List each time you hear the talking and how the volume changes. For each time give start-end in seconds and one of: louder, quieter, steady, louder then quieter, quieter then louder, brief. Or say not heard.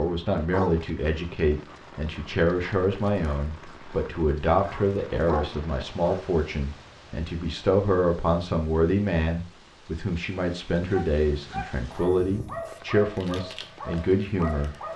0.0-14.7 steady.